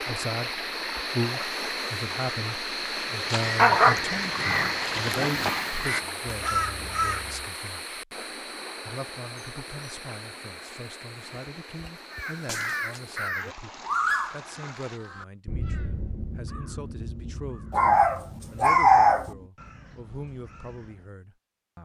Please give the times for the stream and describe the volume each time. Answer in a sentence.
You can hear the stream from 0.0 to 15.0 s, getting quieter.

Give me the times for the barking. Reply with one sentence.
The barking can be heard from 3.5 to 5.5 s and from 17.7 to 19.3 s.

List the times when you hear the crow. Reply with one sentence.
The crow can be heard from 3.1 to 7.5 s and from 12.1 to 21.1 s.